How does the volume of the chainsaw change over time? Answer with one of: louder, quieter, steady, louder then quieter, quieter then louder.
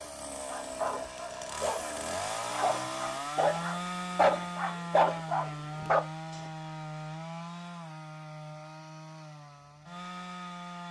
quieter.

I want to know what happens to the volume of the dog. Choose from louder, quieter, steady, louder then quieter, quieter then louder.
louder.